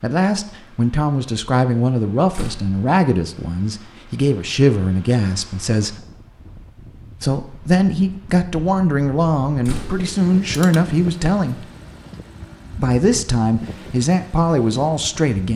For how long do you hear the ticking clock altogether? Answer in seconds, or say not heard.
not heard.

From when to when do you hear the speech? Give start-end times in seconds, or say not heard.
0.0-6.0, 7.2-11.7, 12.7-15.5.